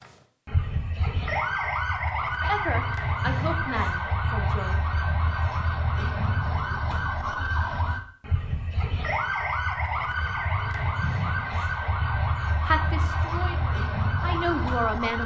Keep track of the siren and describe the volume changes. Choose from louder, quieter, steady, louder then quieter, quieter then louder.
steady.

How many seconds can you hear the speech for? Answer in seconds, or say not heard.
5 s.